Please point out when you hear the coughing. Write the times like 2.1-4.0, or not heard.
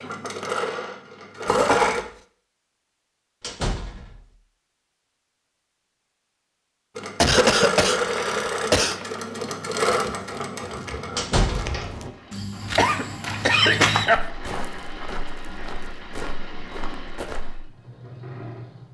1.4-2.0, 7.2-8.9, 12.8-14.2.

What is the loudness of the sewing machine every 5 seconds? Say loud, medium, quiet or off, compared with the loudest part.
loud, loud, medium, quiet.